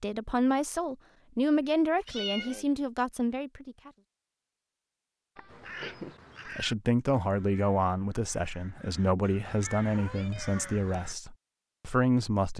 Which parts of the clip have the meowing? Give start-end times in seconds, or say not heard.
1.6-2.6, 5.3-6.2, 9.8-11.0.